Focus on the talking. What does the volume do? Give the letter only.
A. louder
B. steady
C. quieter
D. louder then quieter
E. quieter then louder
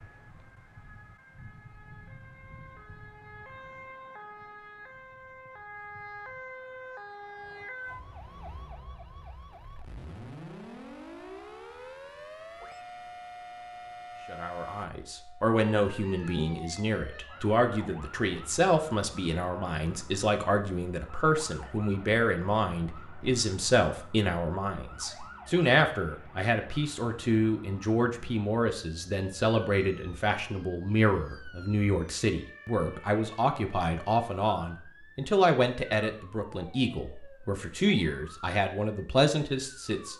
B.